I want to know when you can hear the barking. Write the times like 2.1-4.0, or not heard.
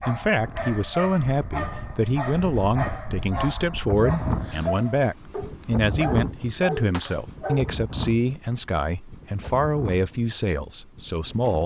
0.0-7.8.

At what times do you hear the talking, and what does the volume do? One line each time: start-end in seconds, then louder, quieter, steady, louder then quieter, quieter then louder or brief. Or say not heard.
0.0-11.6 steady.